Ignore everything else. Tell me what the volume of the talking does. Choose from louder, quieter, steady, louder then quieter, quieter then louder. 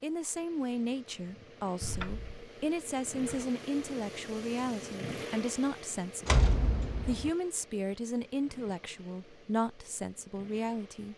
steady.